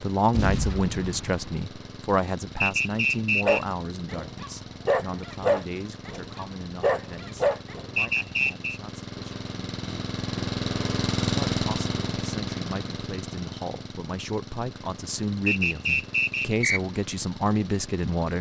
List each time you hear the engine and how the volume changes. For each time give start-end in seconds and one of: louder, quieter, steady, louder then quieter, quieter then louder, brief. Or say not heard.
0.0-18.3 louder then quieter.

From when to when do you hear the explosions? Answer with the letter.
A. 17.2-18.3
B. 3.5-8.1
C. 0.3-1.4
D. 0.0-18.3
C.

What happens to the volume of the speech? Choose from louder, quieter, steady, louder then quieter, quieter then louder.
quieter then louder.